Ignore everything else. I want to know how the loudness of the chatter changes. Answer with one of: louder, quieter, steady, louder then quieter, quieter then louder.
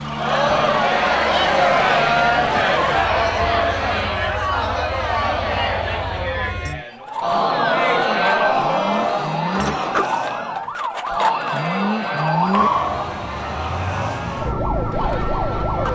quieter.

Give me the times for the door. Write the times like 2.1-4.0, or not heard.
9.6-10.2.